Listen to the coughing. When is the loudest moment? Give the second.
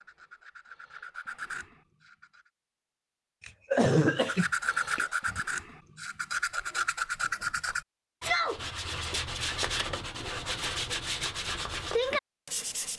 4 s.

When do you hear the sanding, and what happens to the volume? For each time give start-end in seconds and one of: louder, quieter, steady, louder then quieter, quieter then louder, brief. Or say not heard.
0.0-2.5 brief
4.2-12.9 steady.